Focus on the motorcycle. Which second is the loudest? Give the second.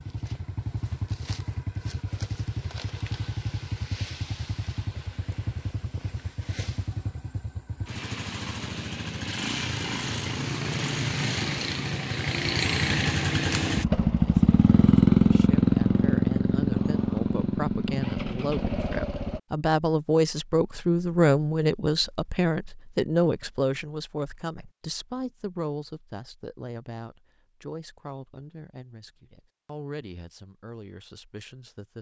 15 s.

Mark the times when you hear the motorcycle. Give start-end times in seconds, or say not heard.
0.0-19.4.